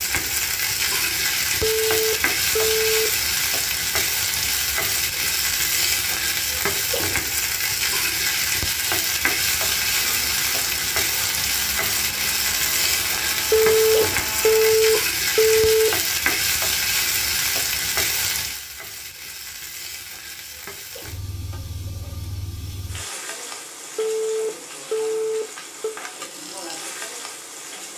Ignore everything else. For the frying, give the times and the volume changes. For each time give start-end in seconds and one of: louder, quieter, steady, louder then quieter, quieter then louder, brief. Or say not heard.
0.0-27.9 quieter.